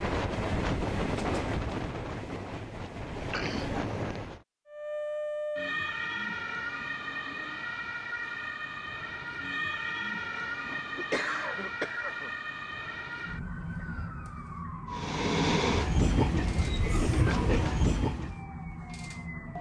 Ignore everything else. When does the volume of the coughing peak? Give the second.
11 s.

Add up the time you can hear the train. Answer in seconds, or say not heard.
8 s.